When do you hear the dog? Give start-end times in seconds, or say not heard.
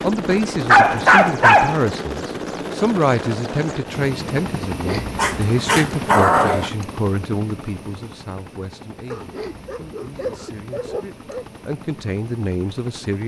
0.7-1.8, 5.2-6.7, 9.1-11.4.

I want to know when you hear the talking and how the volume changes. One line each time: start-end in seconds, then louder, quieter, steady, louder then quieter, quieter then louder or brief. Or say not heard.
0.0-13.2 quieter then louder.